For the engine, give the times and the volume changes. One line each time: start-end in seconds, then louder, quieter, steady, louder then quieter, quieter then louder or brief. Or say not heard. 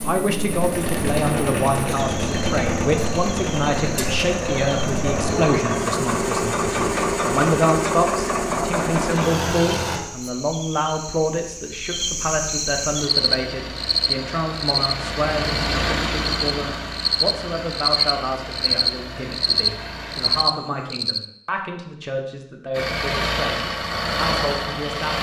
0.0-10.0 steady
12.9-20.4 louder then quieter
22.7-25.1 brief.